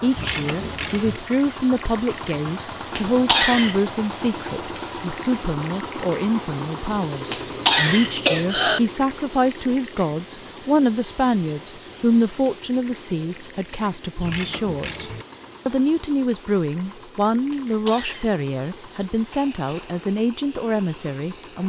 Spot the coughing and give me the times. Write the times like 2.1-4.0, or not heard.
3.0-3.8, 7.3-8.8, 17.5-18.4.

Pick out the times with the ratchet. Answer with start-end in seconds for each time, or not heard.
0.1-1.2, 14.2-15.2.